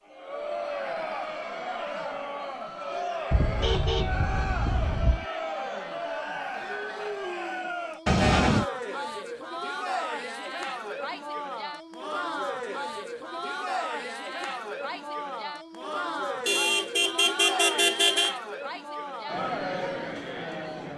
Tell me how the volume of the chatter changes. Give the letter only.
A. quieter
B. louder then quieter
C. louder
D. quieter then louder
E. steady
E.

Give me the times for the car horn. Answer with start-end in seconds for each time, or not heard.
3.3-5.2, 8.1-8.7, 16.4-18.4.